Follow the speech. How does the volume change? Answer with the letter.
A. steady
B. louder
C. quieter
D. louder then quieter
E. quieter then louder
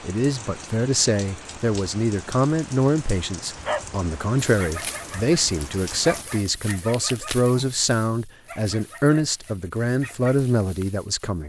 A.